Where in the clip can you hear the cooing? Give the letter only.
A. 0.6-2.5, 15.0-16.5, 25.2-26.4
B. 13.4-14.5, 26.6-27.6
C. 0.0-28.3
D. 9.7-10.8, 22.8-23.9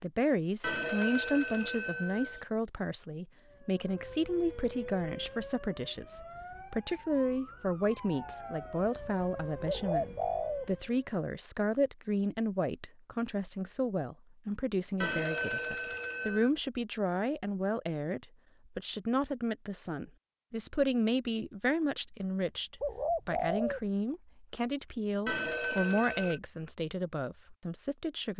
D.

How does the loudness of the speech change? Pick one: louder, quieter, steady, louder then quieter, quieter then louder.
steady.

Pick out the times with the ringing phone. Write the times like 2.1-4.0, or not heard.
0.6-2.5, 15.0-16.5, 25.2-26.4.